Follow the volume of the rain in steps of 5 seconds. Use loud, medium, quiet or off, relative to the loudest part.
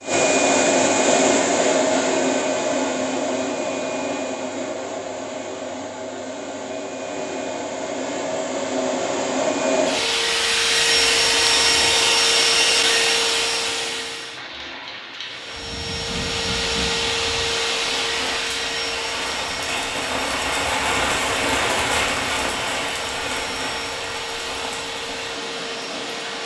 off, off, medium, medium, loud, medium.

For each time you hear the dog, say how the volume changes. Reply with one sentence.
You can't hear the dog here.